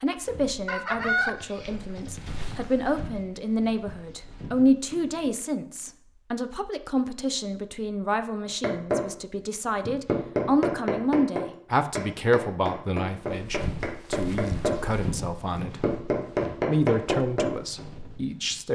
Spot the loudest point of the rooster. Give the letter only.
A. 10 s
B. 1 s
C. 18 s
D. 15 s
B.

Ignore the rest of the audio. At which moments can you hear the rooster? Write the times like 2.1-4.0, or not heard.
0.7-2.5.